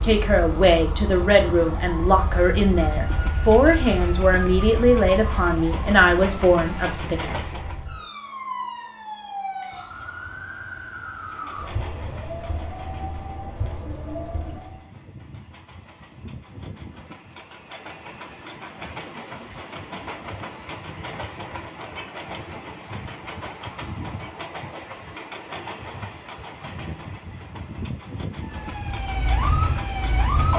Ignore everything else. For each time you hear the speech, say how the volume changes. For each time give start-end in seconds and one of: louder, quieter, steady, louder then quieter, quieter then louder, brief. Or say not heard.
0.0-7.2 steady.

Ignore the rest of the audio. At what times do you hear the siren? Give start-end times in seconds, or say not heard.
0.0-14.9, 28.4-30.5.